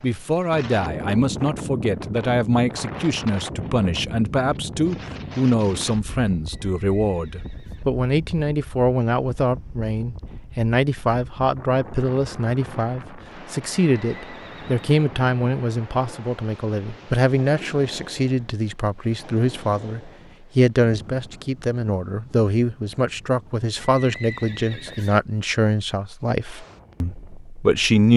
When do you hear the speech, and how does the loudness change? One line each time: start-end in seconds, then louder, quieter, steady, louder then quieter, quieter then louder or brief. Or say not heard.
0.0-28.1 steady.